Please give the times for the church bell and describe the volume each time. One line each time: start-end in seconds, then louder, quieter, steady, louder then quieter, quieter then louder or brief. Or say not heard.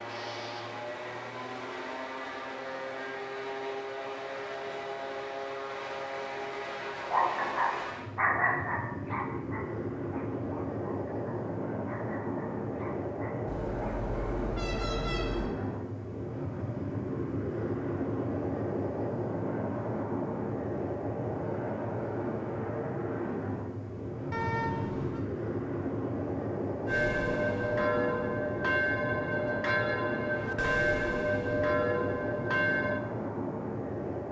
26.9-33.0 steady.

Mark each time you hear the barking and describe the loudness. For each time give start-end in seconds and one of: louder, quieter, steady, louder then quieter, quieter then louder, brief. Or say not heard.
7.0-14.1 quieter.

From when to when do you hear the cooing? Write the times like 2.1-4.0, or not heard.
not heard.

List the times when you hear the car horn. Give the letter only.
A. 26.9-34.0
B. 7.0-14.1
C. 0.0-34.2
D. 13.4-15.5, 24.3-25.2
D.